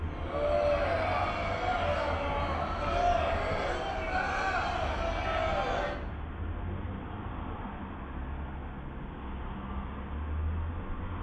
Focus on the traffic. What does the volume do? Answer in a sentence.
The volume of the traffic stays about the same.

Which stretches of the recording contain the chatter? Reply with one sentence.
The chatter can be heard from 0.0 to 6.0 s.